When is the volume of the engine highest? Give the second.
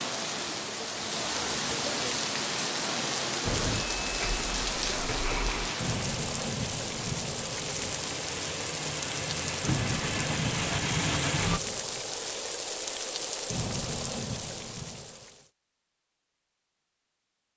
11 s.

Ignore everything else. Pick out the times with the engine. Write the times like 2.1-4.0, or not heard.
3.5-11.6.